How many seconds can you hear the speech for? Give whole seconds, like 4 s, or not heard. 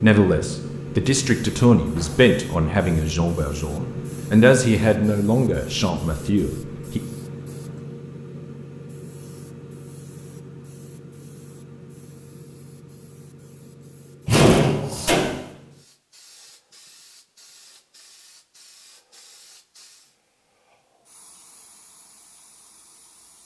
7 s.